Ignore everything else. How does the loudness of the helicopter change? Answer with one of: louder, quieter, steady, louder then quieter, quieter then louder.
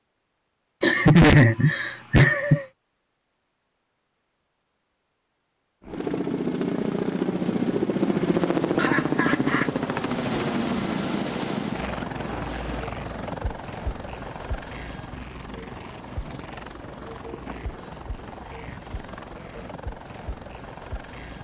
quieter.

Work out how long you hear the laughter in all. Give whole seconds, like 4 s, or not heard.
3 s.